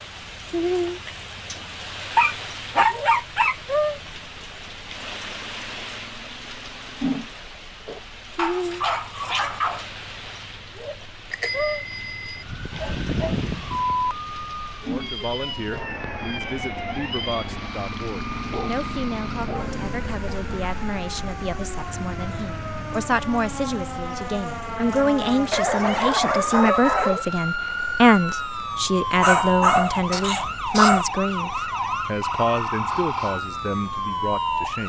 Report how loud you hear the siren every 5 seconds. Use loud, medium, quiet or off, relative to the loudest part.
off, off, loud, medium, medium, loud, loud.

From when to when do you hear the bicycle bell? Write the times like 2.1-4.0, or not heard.
11.3-12.4.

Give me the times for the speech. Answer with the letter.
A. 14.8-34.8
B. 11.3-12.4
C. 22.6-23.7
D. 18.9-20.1
A.